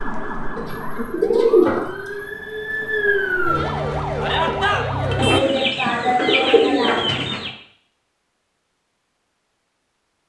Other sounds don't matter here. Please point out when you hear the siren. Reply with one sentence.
The siren can be heard from 0.0 to 5.4 s.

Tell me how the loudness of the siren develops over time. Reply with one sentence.
The loudness of the siren goes up.